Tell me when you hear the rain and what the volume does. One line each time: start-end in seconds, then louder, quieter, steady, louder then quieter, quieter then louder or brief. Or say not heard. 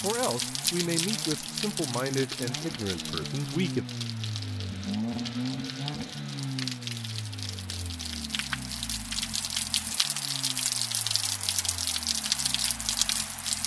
0.0-13.6 quieter then louder.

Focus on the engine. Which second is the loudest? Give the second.
5 s.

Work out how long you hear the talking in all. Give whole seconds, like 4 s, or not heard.
4 s.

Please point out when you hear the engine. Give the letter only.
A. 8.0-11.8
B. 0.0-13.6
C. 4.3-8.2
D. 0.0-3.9
B.